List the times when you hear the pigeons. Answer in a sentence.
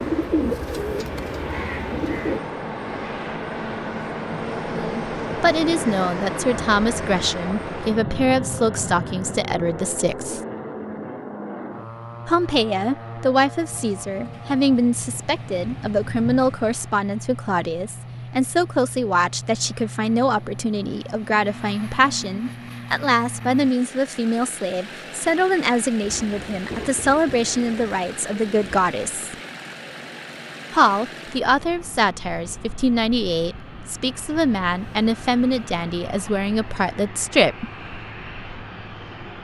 The pigeons can be heard from 0.0 to 2.5 s.